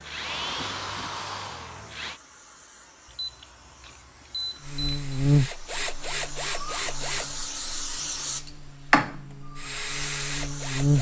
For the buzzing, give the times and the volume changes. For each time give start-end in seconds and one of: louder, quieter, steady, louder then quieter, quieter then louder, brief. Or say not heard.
4.7-10.9 quieter then louder.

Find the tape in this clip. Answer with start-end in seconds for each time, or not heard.
not heard.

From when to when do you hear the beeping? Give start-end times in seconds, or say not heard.
3.1-5.2.